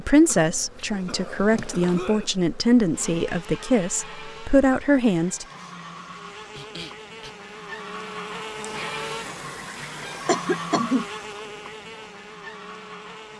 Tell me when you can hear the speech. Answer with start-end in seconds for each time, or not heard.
0.0-5.5.